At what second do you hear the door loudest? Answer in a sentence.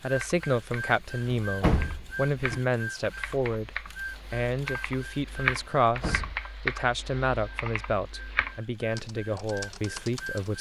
The volume of the door peaks at 2 seconds.